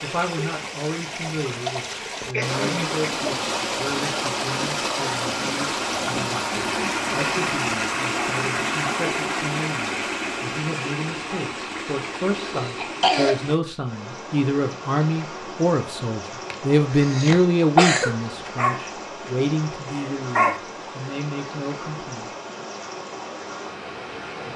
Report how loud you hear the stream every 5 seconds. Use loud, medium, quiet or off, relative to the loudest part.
loud, loud, medium, medium, medium.